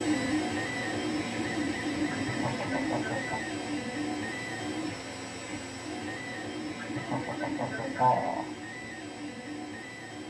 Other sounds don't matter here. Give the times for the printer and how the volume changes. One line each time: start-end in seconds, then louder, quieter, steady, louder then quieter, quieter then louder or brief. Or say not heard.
0.0-10.2 quieter.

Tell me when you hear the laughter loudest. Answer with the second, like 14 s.
8 s.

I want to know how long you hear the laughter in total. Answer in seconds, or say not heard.
3 s.